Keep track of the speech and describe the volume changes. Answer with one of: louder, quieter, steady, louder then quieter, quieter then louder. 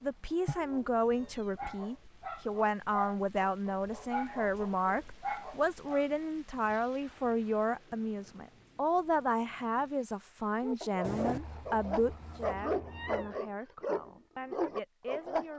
quieter.